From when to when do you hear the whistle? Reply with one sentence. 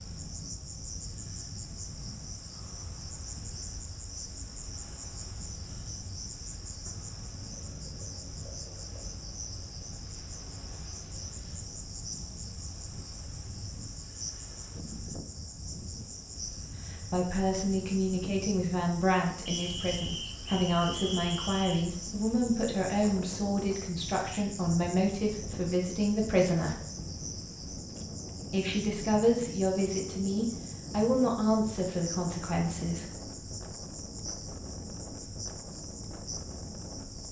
The whistle can be heard from 19.4 to 21.9 s.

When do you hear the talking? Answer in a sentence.
The talking can be heard from 16.9 to 26.9 s and from 28.4 to 33.0 s.